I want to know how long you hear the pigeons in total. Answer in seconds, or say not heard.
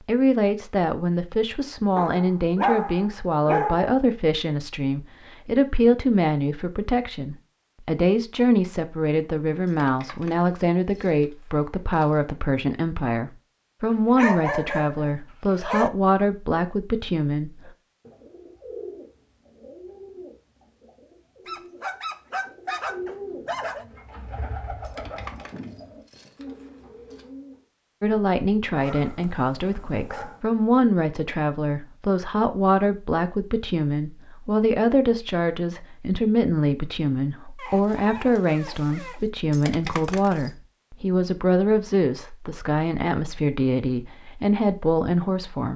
10 s.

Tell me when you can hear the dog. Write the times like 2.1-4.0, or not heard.
1.9-4.0, 13.9-15.9, 21.4-23.9, 28.8-30.4, 37.5-39.2.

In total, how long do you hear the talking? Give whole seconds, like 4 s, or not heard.
35 s.